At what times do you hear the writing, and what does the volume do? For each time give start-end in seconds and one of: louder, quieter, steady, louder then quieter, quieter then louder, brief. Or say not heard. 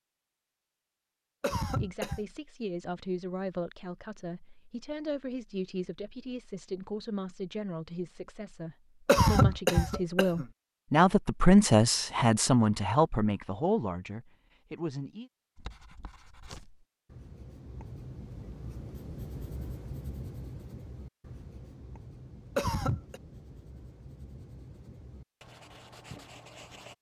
15.6-26.9 louder then quieter.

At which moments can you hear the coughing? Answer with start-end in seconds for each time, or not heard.
1.4-2.2, 9.1-10.4, 22.6-23.2.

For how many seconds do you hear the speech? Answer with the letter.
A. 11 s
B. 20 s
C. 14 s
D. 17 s
C.